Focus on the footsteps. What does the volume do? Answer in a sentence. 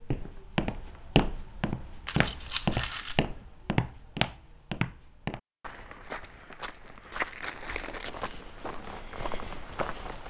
The volume of the footsteps goes down.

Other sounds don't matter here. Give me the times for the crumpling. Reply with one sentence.
The crumpling can be heard from 2.0 to 3.2 s and from 7.4 to 8.2 s.